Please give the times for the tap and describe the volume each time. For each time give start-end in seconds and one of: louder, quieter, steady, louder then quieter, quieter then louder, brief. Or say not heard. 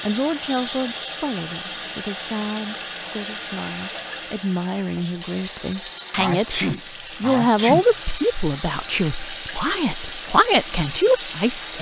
0.0-11.7 steady.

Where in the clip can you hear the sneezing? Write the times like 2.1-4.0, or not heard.
6.2-7.8.